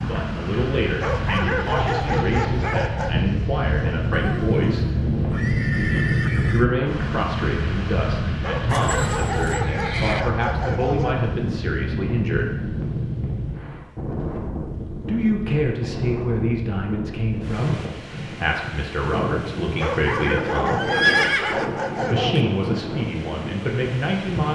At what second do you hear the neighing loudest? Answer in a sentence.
The loudest moment of the neighing is at 21 seconds.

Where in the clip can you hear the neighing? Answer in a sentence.
The neighing can be heard from 4.1 to 6.7 s, from 8.7 to 10.2 s and from 20.8 to 22.4 s.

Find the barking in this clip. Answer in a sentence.
The barking can be heard from 0.9 to 3.2 s, from 8.4 to 11.2 s and from 19.8 to 22.4 s.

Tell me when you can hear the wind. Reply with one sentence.
The wind can be heard from 0.0 to 24.5 s.